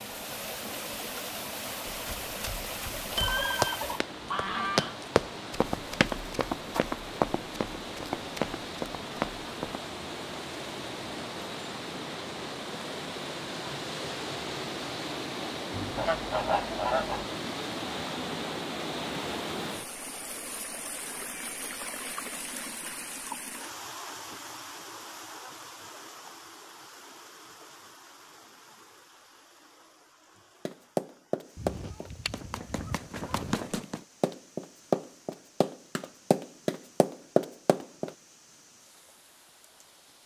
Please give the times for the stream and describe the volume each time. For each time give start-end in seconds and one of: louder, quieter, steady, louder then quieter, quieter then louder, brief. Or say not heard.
0.0-40.2 quieter.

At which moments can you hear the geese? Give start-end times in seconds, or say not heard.
3.1-5.0, 15.7-17.2, 31.6-33.5.